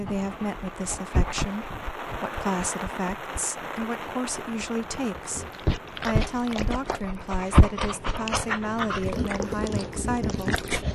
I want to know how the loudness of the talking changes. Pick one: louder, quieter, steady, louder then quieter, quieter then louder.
steady.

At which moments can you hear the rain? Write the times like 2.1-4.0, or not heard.
0.0-7.6.